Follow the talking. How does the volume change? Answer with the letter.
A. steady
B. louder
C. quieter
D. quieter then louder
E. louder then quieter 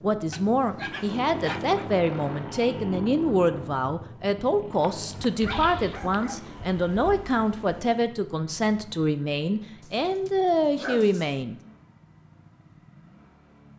A.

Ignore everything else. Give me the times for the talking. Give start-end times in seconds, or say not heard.
0.0-11.6.